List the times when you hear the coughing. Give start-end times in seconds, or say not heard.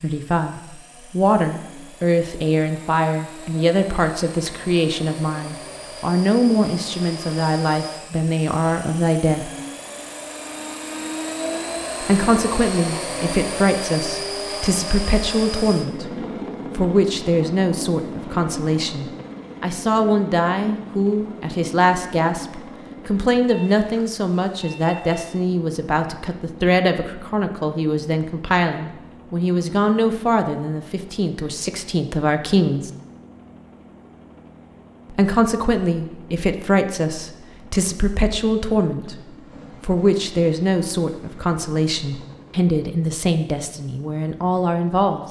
not heard.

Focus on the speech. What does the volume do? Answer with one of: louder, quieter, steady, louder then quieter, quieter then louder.
steady.